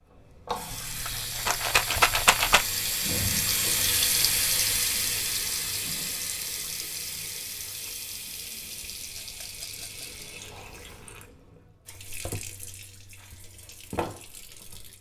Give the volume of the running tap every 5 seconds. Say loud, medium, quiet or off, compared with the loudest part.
loud, medium, quiet.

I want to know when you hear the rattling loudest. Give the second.
2 s.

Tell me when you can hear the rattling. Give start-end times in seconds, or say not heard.
0.7-2.6, 9.2-10.2.